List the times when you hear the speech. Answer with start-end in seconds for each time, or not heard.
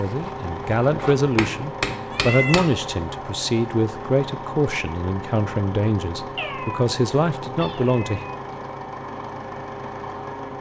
0.0-8.2.